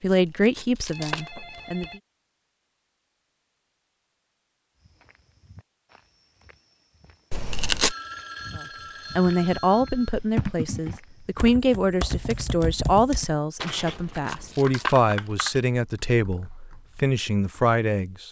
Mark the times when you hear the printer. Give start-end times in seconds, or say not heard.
not heard.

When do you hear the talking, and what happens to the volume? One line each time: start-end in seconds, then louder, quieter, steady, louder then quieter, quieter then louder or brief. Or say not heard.
0.0-1.9 brief
8.6-18.2 steady.